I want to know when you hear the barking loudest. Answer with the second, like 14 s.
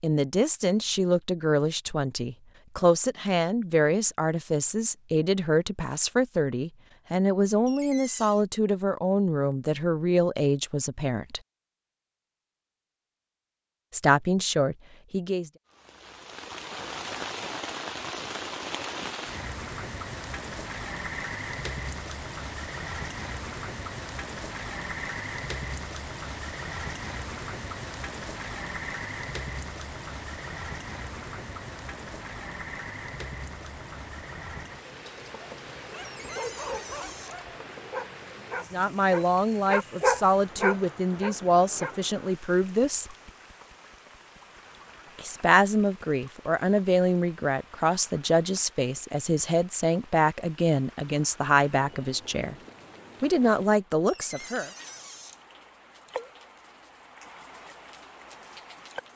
40 s.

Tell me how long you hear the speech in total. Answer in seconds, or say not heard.
26 s.